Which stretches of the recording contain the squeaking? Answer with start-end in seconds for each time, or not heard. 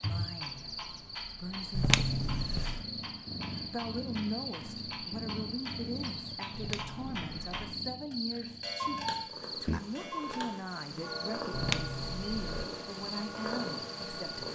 1.8-2.8, 6.5-7.6, 11.5-12.7.